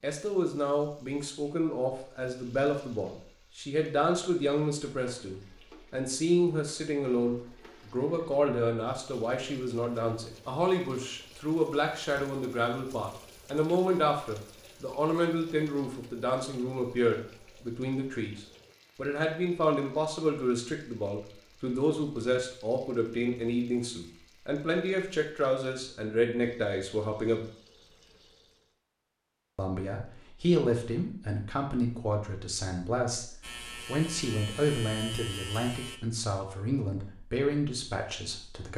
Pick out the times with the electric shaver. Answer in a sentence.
The electric shaver can be heard from 33.4 to 36.0 s.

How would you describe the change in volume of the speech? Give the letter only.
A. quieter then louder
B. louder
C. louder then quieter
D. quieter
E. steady
E.